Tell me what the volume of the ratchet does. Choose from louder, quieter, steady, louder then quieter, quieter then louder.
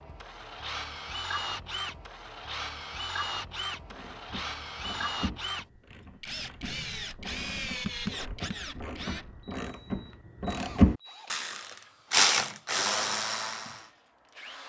louder.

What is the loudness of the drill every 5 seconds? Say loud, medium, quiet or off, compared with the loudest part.
loud, loud, quiet.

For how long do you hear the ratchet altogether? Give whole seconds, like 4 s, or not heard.
10 s.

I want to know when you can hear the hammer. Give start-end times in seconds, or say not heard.
not heard.